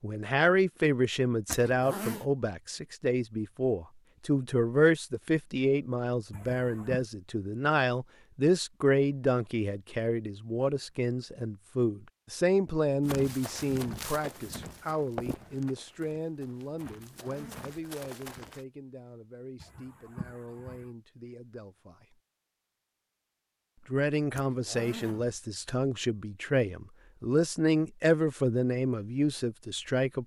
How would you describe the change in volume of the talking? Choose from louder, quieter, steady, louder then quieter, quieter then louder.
quieter then louder.